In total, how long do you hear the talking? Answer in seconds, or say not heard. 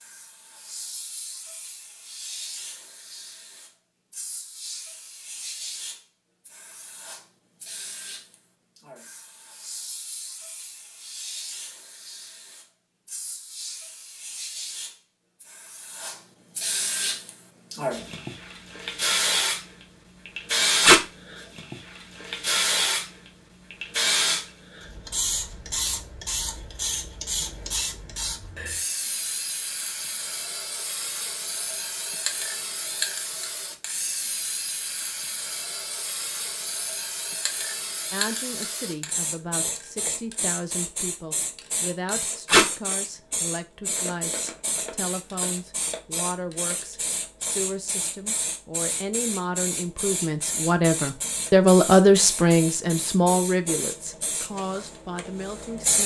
18 s.